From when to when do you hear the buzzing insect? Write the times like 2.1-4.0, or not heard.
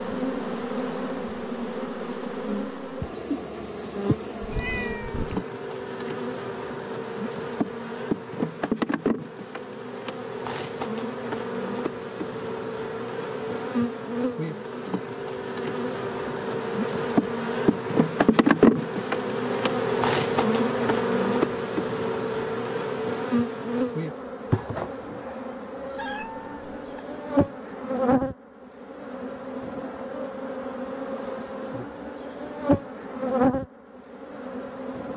0.0-35.1.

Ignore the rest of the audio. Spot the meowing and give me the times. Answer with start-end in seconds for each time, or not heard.
4.4-5.5, 25.9-27.0.